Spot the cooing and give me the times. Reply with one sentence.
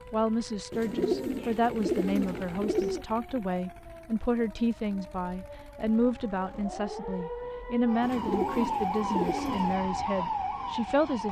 The cooing can be heard from 0.7 to 3.0 s and from 8.0 to 9.8 s.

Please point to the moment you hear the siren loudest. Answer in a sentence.
The loudest moment of the siren is at 9 seconds.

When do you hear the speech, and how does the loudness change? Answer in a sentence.
You can hear the speech from 0.1 to 11.2 s, at a steady volume.